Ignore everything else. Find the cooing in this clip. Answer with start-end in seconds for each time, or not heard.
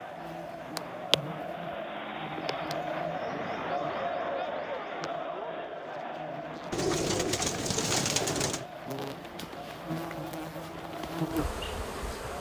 6.7-8.7.